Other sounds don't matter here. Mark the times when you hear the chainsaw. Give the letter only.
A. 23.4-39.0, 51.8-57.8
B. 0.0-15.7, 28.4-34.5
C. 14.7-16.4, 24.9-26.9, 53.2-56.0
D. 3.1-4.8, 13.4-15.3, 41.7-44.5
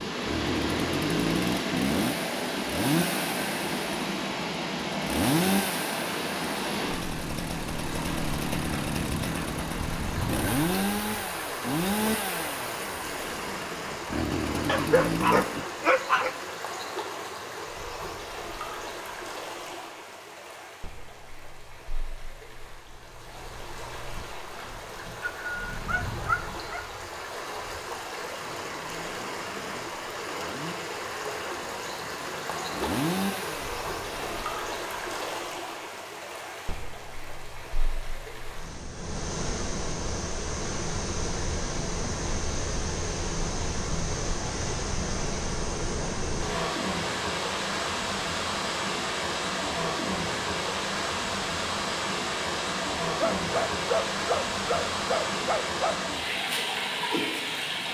B.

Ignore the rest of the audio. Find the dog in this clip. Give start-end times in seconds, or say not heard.
14.7-16.4, 24.9-26.9, 53.2-56.0.